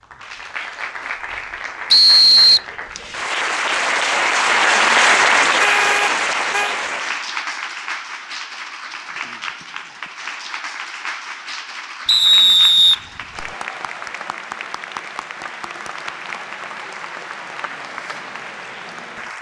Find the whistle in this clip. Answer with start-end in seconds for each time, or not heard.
1.9-2.6, 12.1-13.4.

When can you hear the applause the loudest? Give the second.
5 s.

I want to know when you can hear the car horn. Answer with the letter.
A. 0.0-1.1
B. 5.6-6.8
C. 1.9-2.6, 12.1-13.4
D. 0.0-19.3
B.